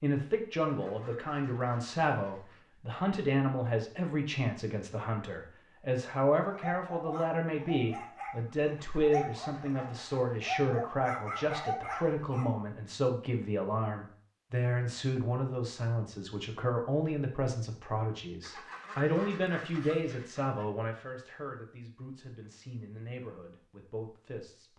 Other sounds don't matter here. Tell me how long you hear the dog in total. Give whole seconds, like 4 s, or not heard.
6 s.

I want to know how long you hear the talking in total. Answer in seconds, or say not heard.
25 s.